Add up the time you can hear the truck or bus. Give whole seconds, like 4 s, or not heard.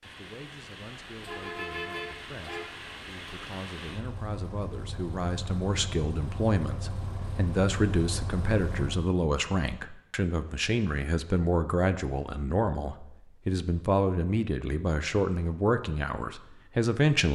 9 s.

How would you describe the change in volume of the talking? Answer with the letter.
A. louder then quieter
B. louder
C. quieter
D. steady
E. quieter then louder
B.